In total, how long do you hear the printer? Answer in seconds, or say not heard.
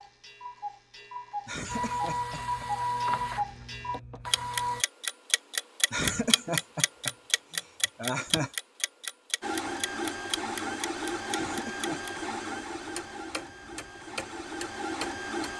9 s.